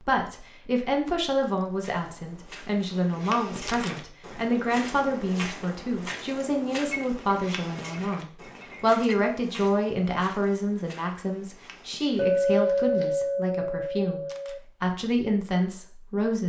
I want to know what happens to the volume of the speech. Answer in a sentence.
The loudness of the speech stays about the same.